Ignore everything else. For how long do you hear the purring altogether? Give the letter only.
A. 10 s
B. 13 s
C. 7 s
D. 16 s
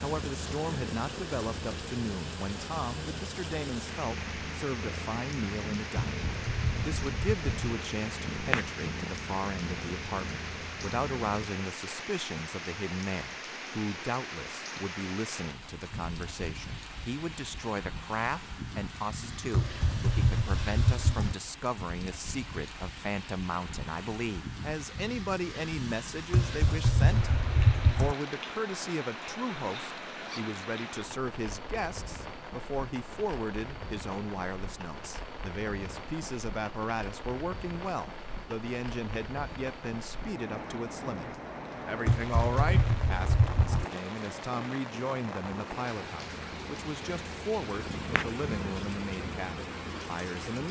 D.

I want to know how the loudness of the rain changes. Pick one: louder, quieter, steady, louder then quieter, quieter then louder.
steady.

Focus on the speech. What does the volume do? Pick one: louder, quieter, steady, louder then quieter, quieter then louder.
steady.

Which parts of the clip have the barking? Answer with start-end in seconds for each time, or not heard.
not heard.